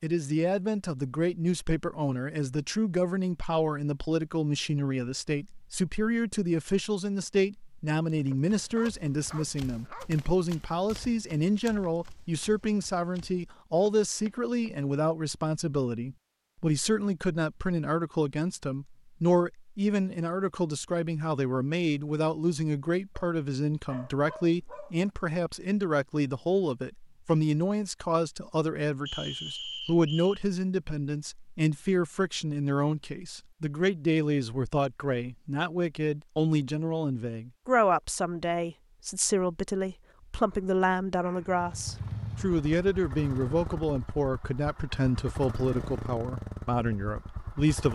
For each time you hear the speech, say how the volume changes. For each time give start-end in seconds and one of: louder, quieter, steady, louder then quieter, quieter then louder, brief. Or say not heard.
0.0-47.9 steady.